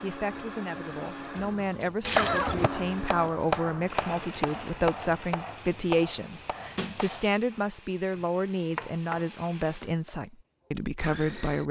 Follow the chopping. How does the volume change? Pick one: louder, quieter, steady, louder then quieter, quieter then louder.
quieter then louder.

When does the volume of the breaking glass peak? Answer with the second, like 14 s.
2 s.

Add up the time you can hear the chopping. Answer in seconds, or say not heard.
8 s.